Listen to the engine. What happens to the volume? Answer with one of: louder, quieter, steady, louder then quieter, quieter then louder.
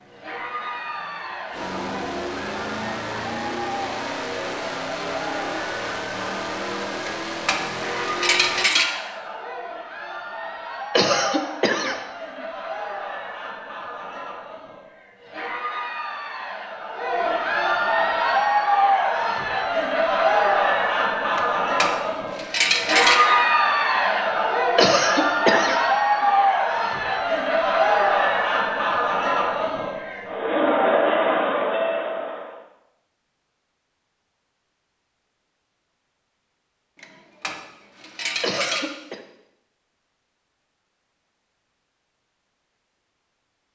louder.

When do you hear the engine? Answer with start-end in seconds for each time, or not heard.
0.0-8.7.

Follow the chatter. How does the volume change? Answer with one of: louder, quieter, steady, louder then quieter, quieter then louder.
louder.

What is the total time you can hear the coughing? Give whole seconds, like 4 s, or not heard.
3 s.